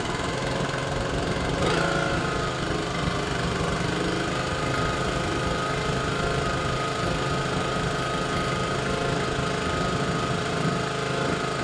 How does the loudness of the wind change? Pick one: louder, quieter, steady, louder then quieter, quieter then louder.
steady.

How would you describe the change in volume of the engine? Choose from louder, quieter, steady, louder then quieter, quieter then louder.
steady.